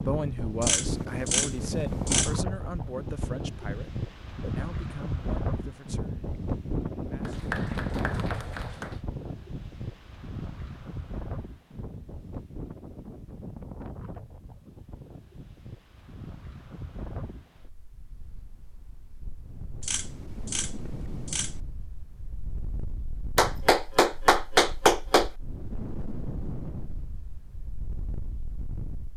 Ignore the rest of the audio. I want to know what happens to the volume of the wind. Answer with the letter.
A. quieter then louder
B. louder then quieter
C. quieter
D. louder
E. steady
C.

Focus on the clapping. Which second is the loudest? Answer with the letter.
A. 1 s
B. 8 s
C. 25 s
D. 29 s
C.